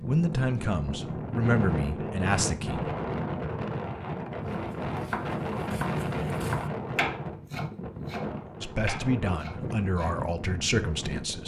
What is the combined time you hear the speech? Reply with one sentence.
You can hear the speech for 6 seconds altogether.